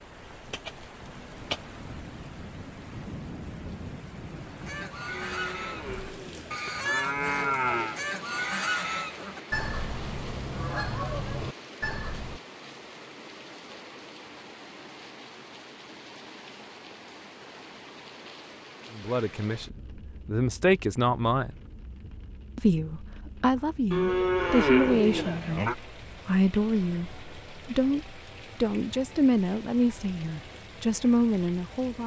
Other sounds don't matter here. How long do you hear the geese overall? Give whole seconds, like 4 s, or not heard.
8 s.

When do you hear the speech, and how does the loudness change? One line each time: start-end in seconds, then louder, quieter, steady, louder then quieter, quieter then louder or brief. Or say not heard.
18.9-21.6 brief
22.6-32.0 steady.